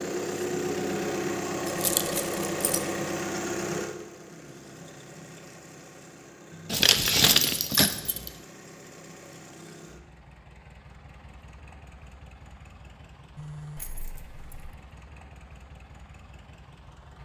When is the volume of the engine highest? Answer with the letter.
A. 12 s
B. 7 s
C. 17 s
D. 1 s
D.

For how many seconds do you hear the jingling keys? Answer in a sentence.
You can hear the jingling keys for 4 seconds altogether.